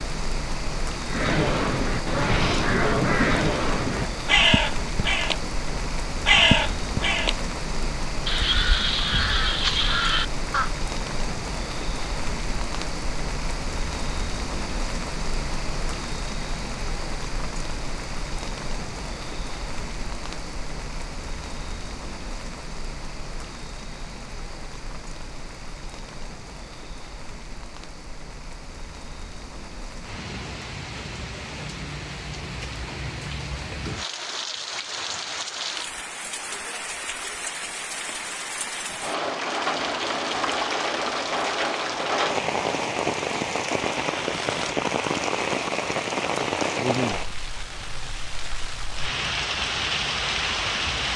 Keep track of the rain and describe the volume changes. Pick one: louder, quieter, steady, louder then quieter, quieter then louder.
quieter then louder.